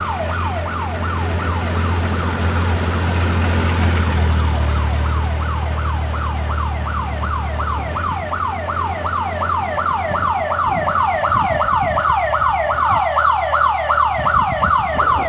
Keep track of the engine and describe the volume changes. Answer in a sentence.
The volume of the engine goes down.